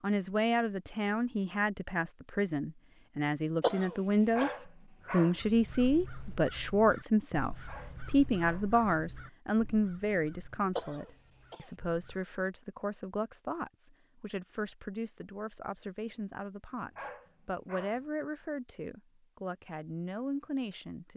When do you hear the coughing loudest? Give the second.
4 s.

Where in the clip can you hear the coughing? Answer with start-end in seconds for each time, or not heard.
3.6-4.5, 10.8-11.7.